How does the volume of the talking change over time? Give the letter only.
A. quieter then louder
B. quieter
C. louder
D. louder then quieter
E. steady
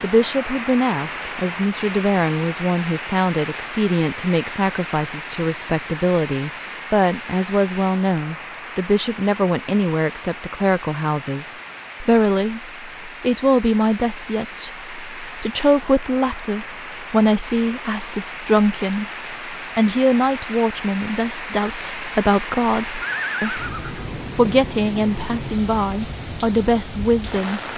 E.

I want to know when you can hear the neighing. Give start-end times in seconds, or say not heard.
23.0-24.1.